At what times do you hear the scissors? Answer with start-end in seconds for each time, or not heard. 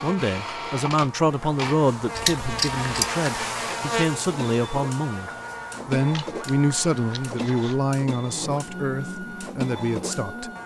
2.1-3.1, 6.0-7.8.